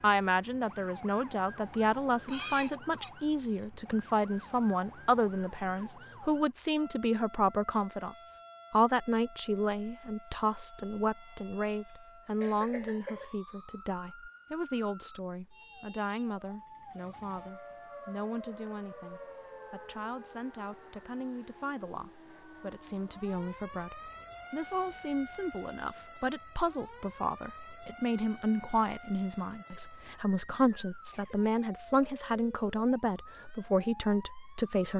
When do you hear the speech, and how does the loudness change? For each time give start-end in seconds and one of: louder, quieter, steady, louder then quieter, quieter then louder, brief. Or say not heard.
0.0-34.9 quieter then louder.